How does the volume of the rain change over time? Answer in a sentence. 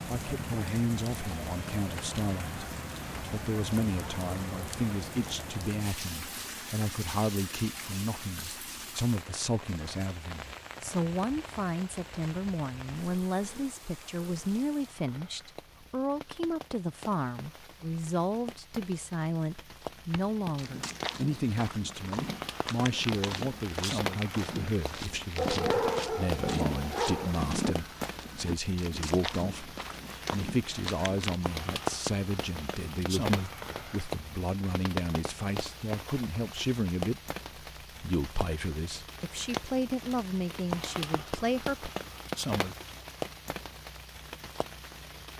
The volume of the rain goes down, then up.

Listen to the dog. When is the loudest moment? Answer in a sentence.
The loudest moment of the dog is at 26 seconds.